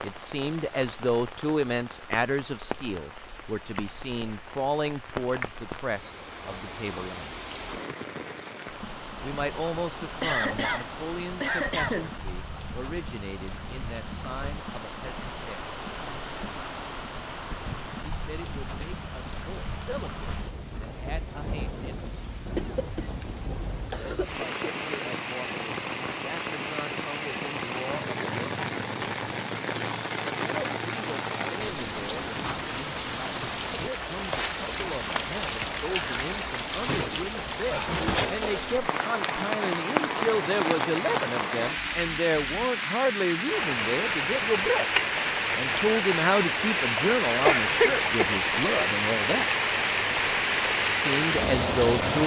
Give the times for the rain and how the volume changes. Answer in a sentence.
The rain can be heard from 0.0 to 52.2 s, getting louder.